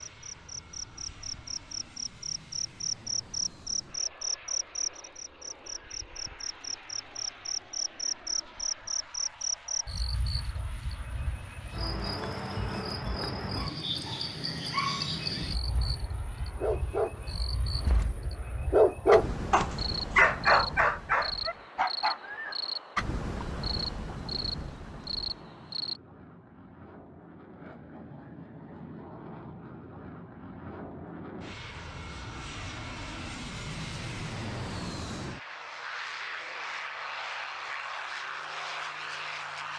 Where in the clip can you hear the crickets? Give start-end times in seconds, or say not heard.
0.0-26.0.